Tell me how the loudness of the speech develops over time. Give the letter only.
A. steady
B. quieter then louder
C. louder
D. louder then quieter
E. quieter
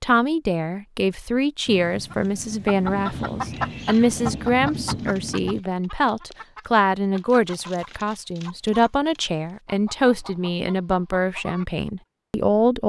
A.